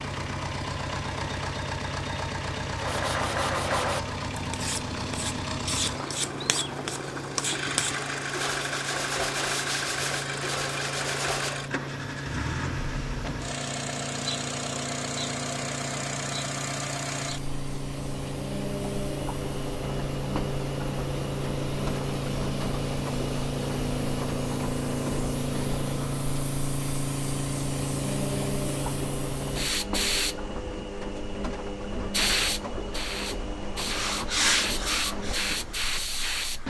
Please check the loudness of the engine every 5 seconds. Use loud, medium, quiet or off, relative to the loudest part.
loud, loud, loud, loud, loud, loud, loud, medium.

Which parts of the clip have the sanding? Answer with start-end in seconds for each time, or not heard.
2.8-11.6, 33.8-36.6.